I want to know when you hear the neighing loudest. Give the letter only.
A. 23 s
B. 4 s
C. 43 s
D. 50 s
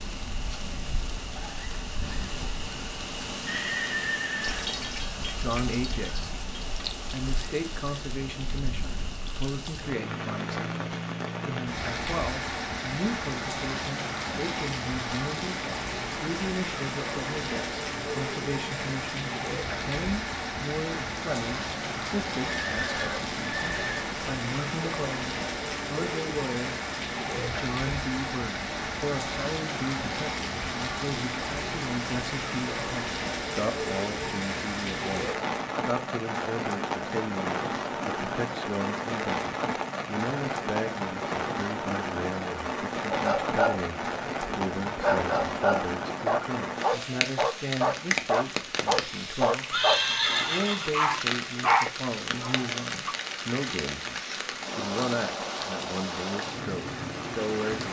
D.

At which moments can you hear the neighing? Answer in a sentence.
You can hear the neighing from 3.5 to 4.8 s, from 22.4 to 24.1 s and from 49.7 to 51.0 s.